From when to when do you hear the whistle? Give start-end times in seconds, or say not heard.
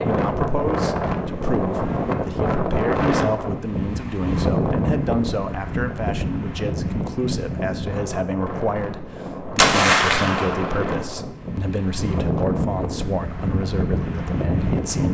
not heard.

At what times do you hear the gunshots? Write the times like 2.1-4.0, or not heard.
9.6-10.8.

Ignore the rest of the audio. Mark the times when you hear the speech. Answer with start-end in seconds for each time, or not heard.
0.0-15.0.